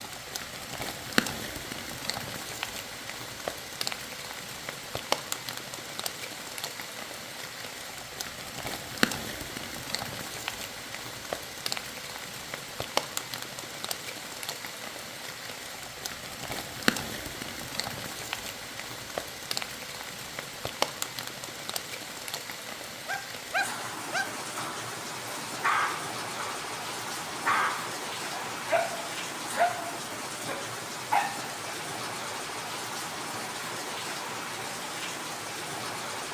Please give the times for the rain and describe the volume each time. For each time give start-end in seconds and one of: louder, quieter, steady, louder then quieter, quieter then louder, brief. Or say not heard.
0.0-36.3 steady.